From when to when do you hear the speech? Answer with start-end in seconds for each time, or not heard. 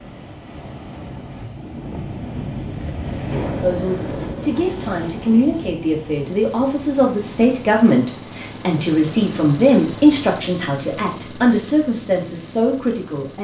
3.3-13.3.